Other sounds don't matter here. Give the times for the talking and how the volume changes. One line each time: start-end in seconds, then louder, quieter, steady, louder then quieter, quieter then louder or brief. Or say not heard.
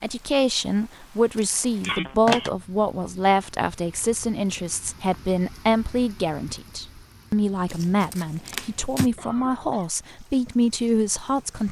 0.0-11.6 steady.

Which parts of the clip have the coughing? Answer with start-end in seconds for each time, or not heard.
1.9-2.5, 9.2-9.9.